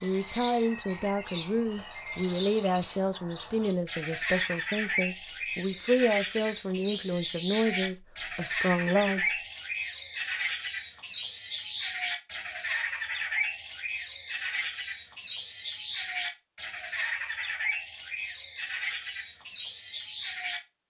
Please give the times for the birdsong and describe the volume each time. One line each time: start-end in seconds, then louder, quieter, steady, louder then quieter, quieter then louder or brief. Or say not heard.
0.0-20.6 steady.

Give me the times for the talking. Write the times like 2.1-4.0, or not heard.
0.0-9.3.